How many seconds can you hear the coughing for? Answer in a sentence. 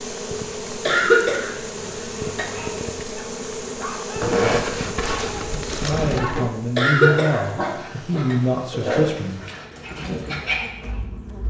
The coughing can be heard for 3 seconds in total.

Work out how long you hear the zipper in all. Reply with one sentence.
The zipper can be heard for 2 seconds in total.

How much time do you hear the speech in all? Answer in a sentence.
The speech can be heard for 4 seconds in total.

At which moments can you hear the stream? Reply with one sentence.
You can't hear the stream here.